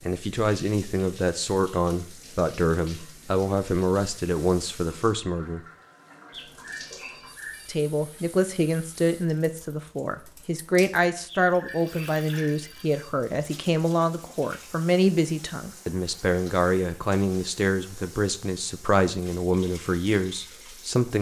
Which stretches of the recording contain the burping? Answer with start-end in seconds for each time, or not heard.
not heard.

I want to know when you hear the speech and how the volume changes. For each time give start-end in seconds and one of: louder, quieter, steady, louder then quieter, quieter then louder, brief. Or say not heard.
0.0-5.6 steady
7.7-21.1 steady.